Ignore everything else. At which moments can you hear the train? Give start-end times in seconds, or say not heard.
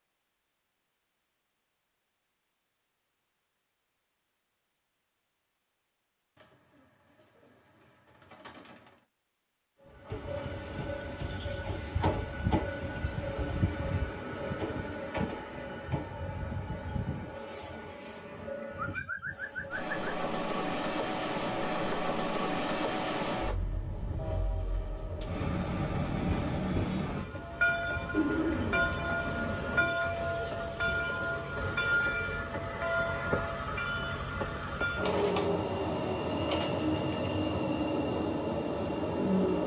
9.9-39.6.